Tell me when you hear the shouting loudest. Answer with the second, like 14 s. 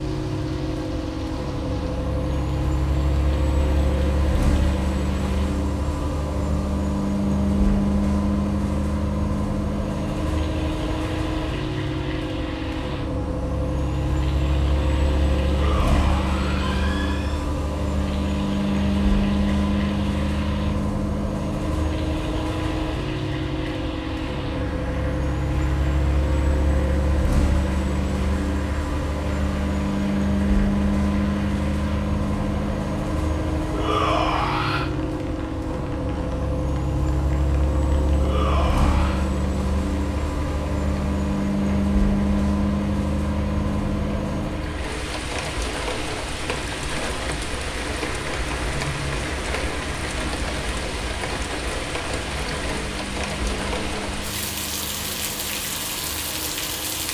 34 s.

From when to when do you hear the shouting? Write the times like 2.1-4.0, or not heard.
15.4-17.4, 33.7-34.9, 38.1-39.3.